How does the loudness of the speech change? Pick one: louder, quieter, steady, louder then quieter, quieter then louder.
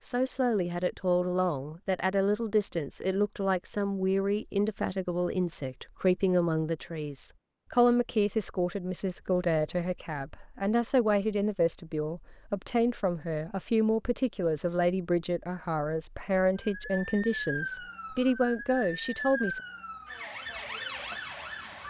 steady.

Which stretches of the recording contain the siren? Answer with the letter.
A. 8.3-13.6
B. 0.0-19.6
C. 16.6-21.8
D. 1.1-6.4
C.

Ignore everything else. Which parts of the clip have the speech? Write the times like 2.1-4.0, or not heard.
0.0-19.6.